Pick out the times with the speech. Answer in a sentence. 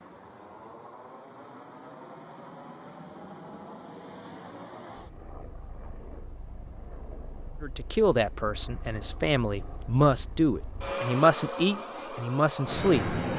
The speech can be heard from 7.6 to 13.2 s.